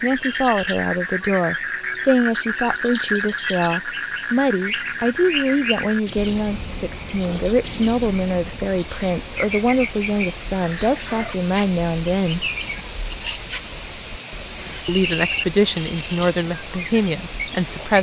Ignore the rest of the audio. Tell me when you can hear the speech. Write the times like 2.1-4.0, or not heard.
0.0-12.5, 14.8-17.9.